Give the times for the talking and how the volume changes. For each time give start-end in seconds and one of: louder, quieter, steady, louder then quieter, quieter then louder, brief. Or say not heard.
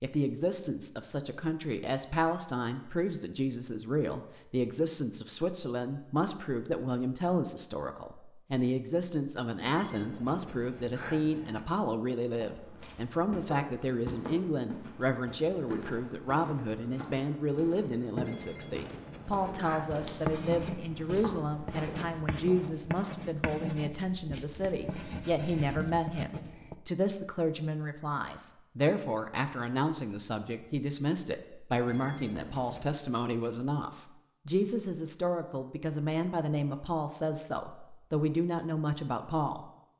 0.0-39.6 steady.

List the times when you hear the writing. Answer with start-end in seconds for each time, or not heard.
20.1-26.8.